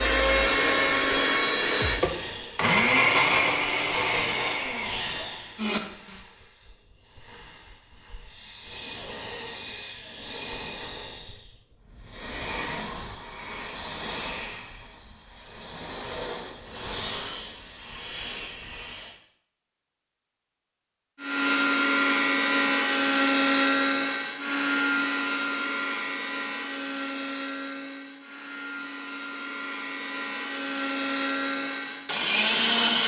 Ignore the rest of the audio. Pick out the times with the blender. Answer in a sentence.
You can hear the blender from 0.0 to 6.2 s and from 21.2 to 33.0 s.